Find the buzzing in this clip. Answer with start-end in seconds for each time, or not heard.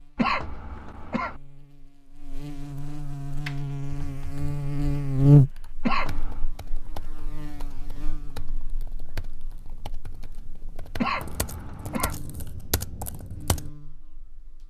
0.0-14.6.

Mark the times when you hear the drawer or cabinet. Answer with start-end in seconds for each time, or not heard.
not heard.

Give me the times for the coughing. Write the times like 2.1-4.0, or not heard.
0.1-1.4, 5.8-6.5, 10.9-12.2.